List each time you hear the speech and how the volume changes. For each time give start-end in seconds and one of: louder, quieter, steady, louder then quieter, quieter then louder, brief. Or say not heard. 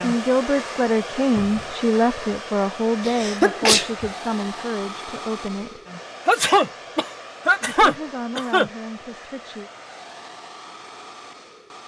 0.0-5.8 quieter
7.7-9.7 brief.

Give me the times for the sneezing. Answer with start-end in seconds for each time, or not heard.
3.0-4.1, 6.2-8.7.